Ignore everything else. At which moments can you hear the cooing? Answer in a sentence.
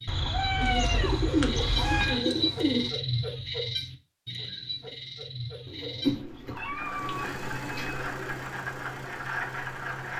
You can hear the cooing from 0.6 to 2.9 s and from 5.7 to 8.4 s.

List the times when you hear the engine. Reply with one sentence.
You can hear the engine from 6.8 to 10.1 s.